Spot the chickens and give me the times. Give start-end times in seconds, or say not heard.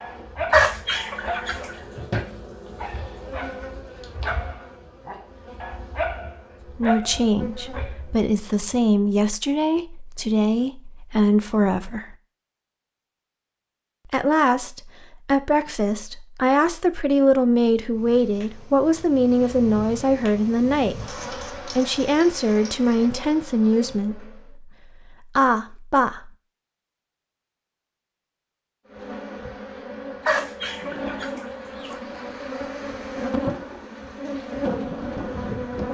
0.5-1.8, 30.2-31.9.